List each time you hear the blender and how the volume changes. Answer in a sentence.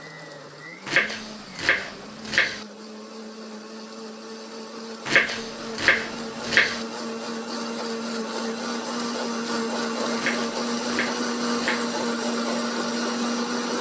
The blender can be heard from 0.0 to 13.7 s, getting louder.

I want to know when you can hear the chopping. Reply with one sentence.
You can hear the chopping from 0.8 to 2.6 s, from 5.0 to 6.8 s and from 10.2 to 11.9 s.